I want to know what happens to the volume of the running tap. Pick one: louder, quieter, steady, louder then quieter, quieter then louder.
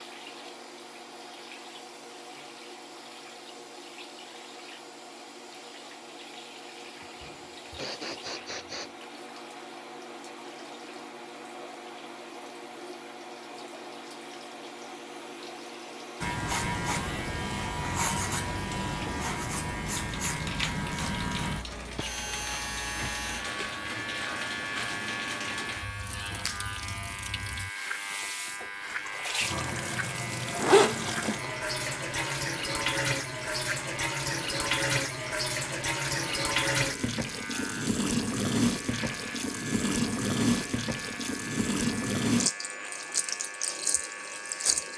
louder.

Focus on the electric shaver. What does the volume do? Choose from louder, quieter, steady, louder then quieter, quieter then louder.
quieter.